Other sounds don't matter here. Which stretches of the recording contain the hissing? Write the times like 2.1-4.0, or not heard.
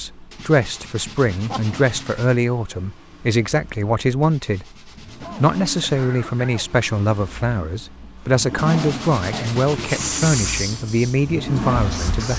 9.8-12.3.